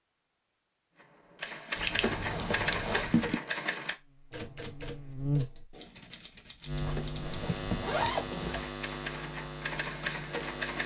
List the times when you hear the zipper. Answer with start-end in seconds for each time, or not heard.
2.0-3.0, 7.0-8.7.